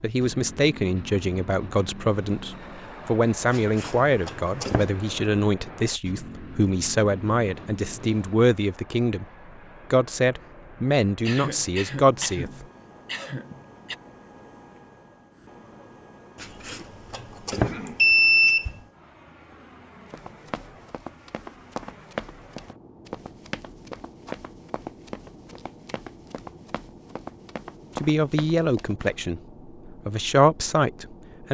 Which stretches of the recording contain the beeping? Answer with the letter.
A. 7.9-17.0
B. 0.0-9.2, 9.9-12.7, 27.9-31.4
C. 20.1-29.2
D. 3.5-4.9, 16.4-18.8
D.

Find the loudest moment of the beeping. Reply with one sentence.
The volume of the beeping peaks at 18 seconds.